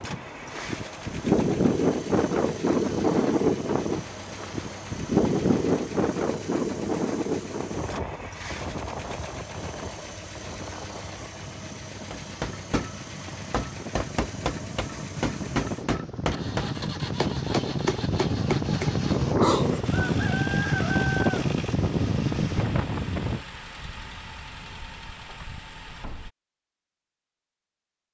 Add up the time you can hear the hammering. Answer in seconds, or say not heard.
7 s.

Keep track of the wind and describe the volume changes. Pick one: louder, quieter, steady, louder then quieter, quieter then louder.
quieter then louder.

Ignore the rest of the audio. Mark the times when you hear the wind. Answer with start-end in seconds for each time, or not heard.
0.0-23.4.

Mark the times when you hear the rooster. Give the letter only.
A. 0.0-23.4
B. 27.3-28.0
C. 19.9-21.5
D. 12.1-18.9
C.